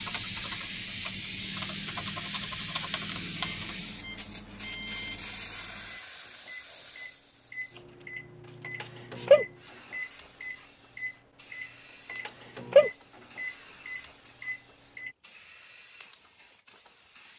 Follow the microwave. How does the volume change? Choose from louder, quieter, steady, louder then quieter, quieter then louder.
louder.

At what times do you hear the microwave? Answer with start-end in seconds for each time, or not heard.
0.0-15.1.